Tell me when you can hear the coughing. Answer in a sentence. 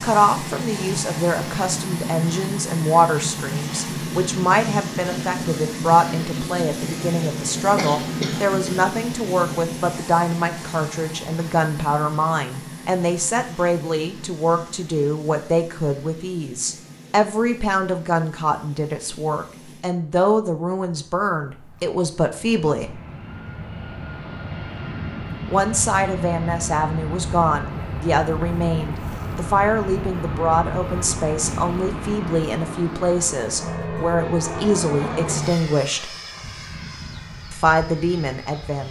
The coughing can be heard from 7.8 to 8.8 s.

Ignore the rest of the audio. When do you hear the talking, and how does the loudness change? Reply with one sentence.
The talking can be heard from 0.0 to 23.0 s, at a steady volume; from 25.4 to 36.1 s, at a steady volume; and briefly from 37.5 to 38.8 s.